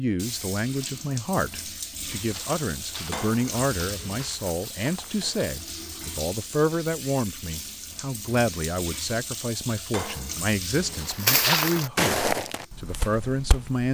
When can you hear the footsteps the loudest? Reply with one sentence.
The volume of the footsteps peaks at 11 seconds.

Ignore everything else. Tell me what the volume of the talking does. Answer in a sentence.
The volume of the talking stays about the same.